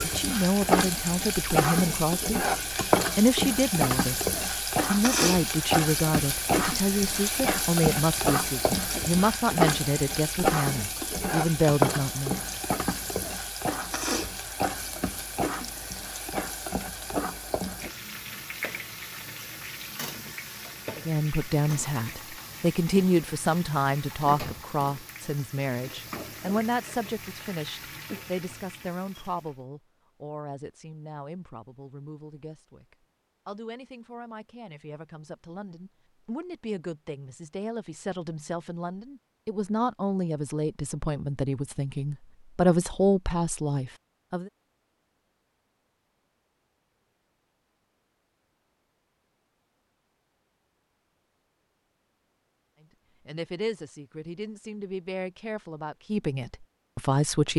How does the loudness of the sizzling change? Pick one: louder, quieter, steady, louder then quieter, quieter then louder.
quieter.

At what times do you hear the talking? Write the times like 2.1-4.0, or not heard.
0.0-2.4, 3.1-4.2, 4.9-12.4, 20.9-44.5, 53.2-57.5.